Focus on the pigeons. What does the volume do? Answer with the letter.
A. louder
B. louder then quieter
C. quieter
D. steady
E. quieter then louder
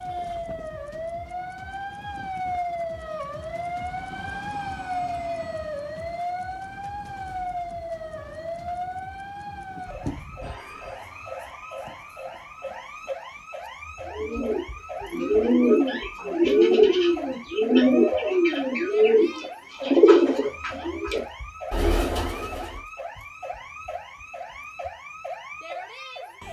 C.